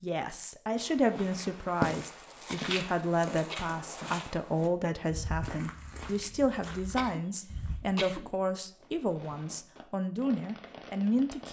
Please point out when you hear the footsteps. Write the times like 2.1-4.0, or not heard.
0.8-7.8.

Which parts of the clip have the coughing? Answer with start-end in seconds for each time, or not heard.
2.4-3.8, 6.8-8.3.